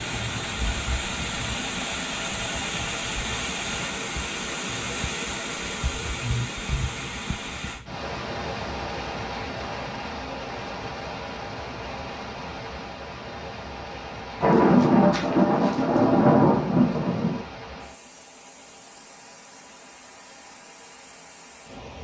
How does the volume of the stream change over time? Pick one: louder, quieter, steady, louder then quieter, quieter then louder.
quieter.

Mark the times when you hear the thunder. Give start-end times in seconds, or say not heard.
14.4-17.4.